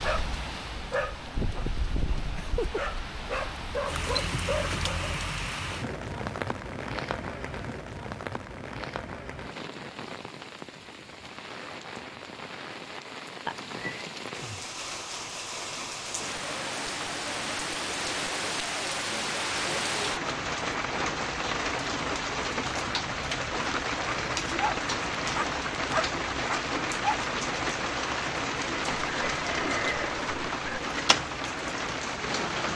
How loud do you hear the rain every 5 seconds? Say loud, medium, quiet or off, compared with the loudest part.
medium, medium, medium, loud, loud, loud, loud.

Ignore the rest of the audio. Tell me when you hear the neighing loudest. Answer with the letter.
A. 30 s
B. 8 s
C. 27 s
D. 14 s
A.